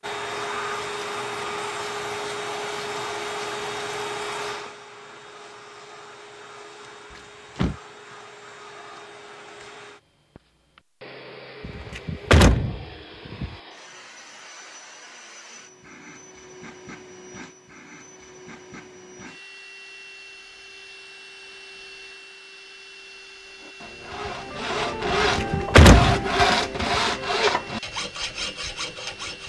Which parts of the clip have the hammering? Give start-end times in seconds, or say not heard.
not heard.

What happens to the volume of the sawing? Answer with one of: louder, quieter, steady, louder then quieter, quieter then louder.
louder then quieter.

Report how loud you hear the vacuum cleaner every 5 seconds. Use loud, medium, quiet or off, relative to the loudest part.
loud, quiet, quiet, quiet, quiet, quiet.